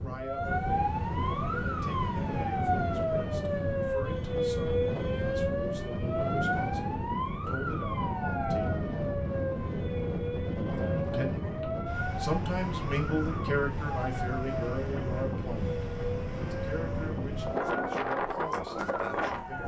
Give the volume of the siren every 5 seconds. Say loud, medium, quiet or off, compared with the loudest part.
loud, loud, medium, medium.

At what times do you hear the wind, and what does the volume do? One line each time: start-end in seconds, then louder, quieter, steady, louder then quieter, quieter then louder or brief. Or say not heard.
0.0-19.6 steady.